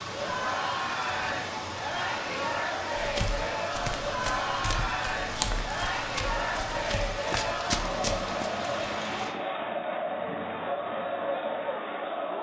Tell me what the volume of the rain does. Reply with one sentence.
The volume of the rain stays about the same.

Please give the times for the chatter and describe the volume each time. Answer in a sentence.
The chatter can be heard from 0.0 to 12.3 s, at a steady volume.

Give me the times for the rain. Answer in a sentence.
The rain can be heard from 0.0 to 9.3 s.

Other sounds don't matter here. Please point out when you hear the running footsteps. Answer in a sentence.
The running footsteps can be heard from 3.0 to 8.5 s.